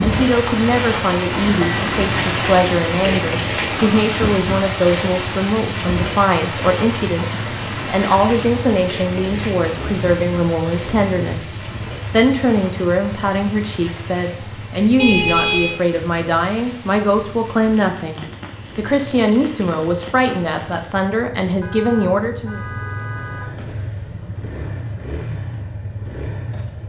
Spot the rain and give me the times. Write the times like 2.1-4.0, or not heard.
0.0-20.9.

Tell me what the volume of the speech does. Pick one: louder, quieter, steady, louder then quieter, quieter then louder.
steady.